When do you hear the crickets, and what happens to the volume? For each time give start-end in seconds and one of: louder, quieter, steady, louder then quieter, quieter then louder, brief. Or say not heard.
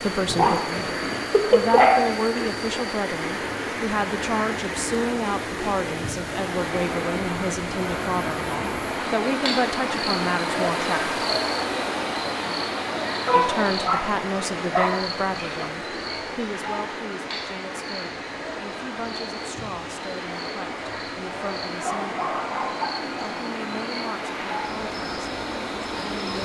0.0-26.4 louder then quieter.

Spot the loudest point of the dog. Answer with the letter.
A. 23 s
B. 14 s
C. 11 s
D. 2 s
D.